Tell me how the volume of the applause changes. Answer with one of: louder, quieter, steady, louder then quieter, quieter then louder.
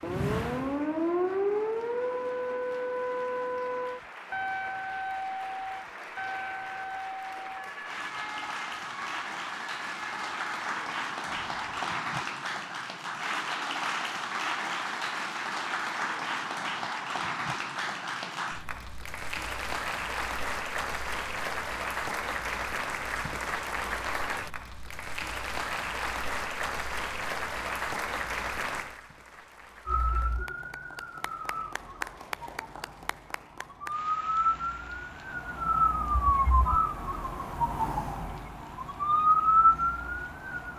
louder then quieter.